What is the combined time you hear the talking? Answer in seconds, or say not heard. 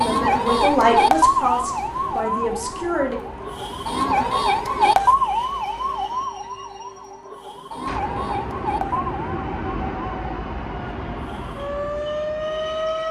3 s.